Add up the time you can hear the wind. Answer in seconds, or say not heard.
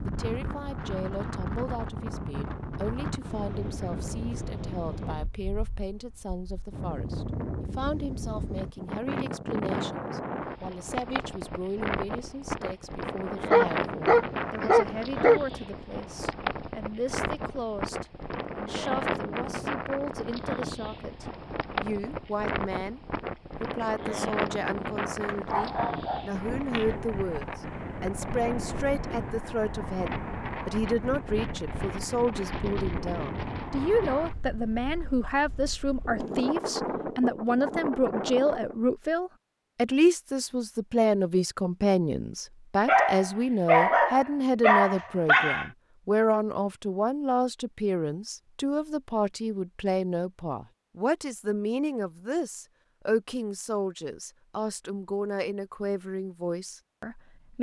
39 s.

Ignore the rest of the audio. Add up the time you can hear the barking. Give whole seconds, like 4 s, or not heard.
6 s.